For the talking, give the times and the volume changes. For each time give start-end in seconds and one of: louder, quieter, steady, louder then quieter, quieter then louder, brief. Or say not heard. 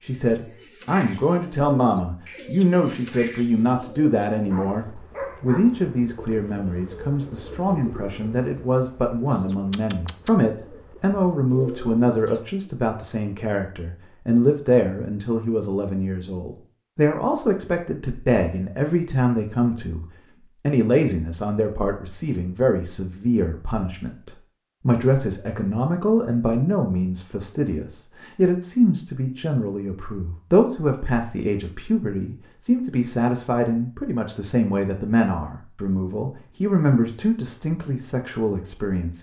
0.0-39.1 steady.